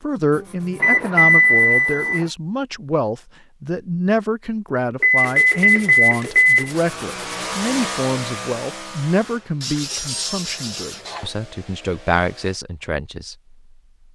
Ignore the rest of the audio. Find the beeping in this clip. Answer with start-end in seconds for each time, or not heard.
0.8-2.2, 5.0-6.7, 9.9-10.3.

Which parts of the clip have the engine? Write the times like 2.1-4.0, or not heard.
6.7-12.6.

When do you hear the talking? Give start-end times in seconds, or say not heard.
0.0-13.6.